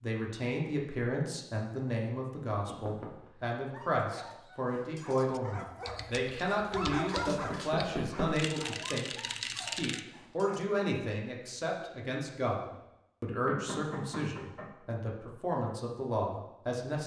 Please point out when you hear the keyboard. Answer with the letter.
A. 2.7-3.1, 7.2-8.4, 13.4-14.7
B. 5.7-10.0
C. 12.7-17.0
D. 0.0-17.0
B.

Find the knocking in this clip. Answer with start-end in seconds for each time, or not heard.
2.7-3.1, 7.2-8.4, 13.4-14.7.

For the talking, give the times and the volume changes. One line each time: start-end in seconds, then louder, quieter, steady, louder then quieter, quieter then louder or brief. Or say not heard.
0.0-17.0 steady.